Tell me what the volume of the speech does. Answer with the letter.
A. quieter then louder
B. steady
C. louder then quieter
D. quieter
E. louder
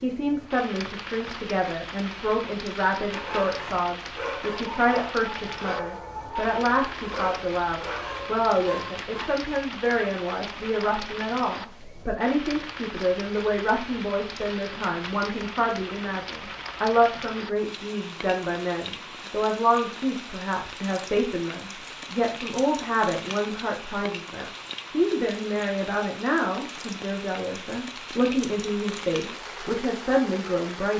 B.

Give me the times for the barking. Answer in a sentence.
The barking can be heard from 3.1 to 9.3 s.